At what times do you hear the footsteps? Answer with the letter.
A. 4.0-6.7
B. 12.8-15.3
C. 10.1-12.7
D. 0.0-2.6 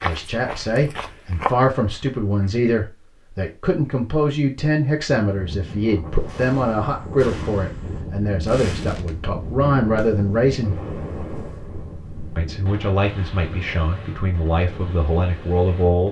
D.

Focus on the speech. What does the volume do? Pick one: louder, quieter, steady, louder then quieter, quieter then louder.
steady.